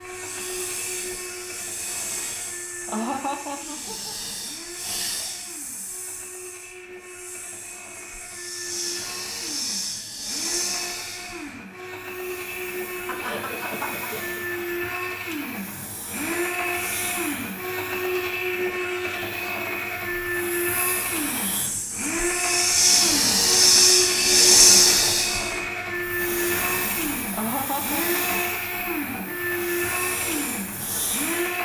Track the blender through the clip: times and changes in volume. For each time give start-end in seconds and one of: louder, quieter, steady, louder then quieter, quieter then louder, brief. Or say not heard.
0.0-31.6 louder.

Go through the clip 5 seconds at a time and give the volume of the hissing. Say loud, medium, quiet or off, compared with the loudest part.
quiet, quiet, quiet, quiet, loud, quiet, quiet.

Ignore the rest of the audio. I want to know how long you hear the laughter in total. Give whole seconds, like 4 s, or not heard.
5 s.